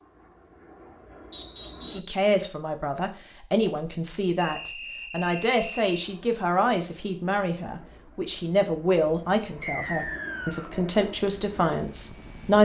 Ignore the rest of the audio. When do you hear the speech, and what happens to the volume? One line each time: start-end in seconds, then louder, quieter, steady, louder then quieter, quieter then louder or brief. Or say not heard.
1.9-12.5 steady.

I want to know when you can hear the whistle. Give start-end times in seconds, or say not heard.
1.3-2.1, 4.4-5.9, 9.6-10.8.